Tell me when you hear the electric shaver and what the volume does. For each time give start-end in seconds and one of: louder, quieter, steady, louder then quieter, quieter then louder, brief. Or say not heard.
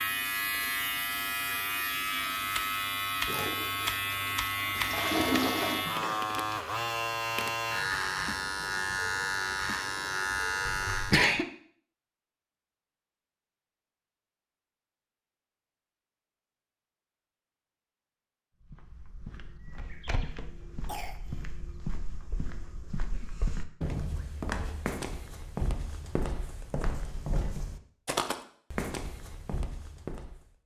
0.0-11.2 steady.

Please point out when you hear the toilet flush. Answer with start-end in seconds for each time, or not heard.
3.2-5.8.